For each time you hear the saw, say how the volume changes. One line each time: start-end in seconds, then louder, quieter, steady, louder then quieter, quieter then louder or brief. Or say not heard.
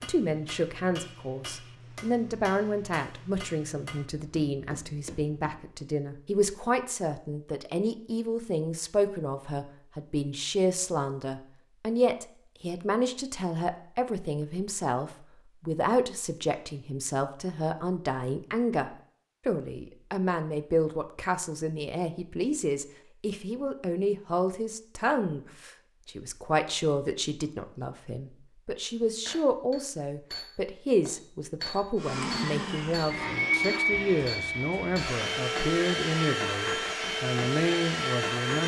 not heard.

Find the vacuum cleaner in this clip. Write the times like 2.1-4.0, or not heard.
31.9-38.6.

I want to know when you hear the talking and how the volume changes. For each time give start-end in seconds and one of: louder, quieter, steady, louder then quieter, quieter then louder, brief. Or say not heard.
0.0-38.6 steady.